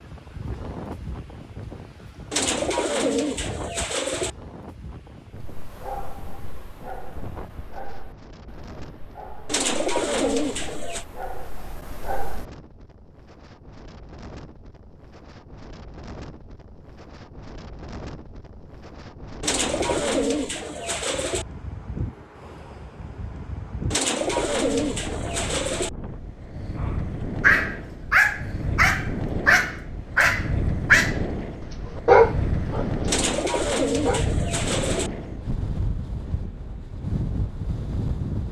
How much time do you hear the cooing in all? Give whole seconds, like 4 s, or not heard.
10 s.